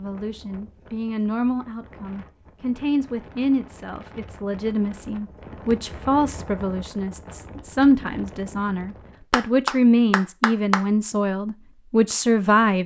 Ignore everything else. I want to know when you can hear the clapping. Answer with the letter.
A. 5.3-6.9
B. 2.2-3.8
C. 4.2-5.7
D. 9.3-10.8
D.